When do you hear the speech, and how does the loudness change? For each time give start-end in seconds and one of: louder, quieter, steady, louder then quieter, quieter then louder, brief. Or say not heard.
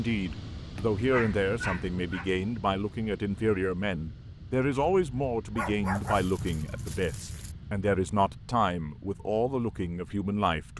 0.0-10.7 steady.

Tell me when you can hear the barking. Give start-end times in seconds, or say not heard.
0.8-2.3, 5.5-7.5.